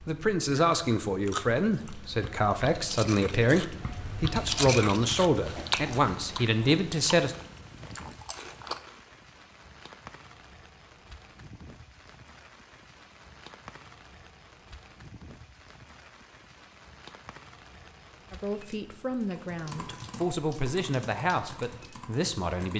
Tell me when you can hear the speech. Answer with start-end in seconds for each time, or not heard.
0.1-7.3, 18.3-22.7.